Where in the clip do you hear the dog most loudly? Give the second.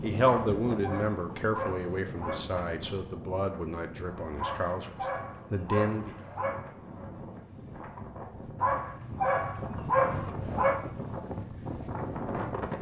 10 s.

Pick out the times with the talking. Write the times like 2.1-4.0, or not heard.
0.0-4.9, 5.5-6.2.